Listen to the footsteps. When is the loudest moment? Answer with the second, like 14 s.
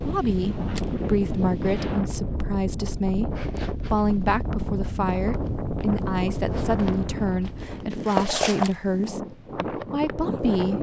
8 s.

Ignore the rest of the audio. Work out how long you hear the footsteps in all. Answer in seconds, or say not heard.
7 s.